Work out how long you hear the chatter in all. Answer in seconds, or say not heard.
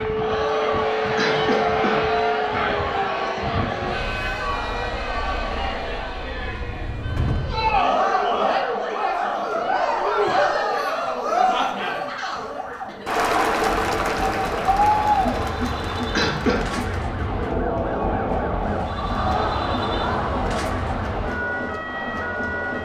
23 s.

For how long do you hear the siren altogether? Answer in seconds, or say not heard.
23 s.